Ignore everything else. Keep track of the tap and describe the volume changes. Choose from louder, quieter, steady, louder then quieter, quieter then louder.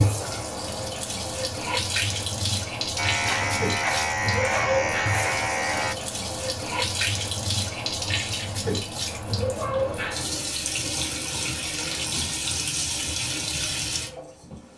steady.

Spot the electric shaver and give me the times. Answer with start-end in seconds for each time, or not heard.
3.0-6.0.